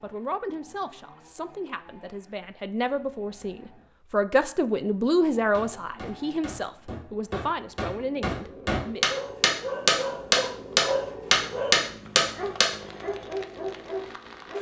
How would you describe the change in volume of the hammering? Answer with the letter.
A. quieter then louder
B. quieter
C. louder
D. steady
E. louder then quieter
C.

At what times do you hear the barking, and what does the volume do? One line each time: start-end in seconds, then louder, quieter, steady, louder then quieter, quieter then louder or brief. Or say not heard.
9.1-14.5 steady.